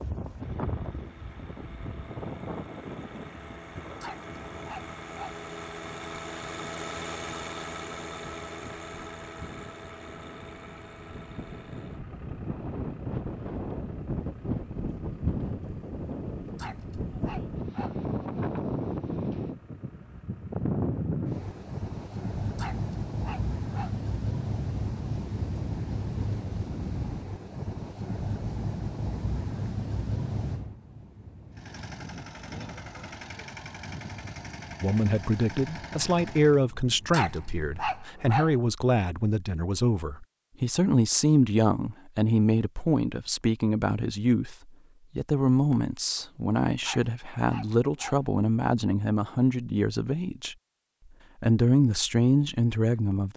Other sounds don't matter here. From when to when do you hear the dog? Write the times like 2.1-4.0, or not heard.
4.0-5.4, 16.6-18.0, 22.6-24.0, 37.1-38.5, 46.8-48.2.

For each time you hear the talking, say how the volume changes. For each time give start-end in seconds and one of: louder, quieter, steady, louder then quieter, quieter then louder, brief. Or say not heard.
34.8-50.5 steady
51.4-53.3 brief.